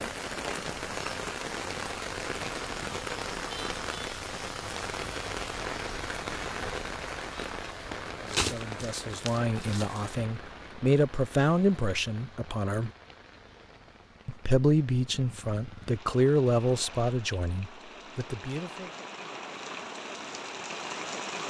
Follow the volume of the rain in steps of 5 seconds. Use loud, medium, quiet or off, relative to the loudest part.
loud, loud, quiet, medium, loud.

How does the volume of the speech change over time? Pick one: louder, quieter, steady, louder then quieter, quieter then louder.
louder then quieter.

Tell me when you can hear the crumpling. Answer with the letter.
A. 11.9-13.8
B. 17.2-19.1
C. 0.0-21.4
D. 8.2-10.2
D.